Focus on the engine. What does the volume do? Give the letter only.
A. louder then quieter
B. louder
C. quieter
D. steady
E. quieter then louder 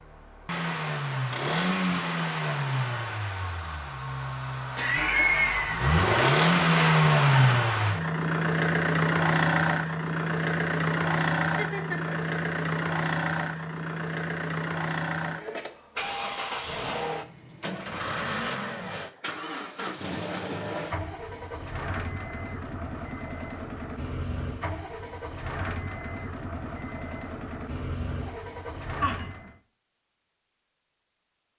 A.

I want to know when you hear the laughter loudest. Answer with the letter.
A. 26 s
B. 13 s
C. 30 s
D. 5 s
D.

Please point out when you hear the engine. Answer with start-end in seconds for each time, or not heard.
0.0-29.6.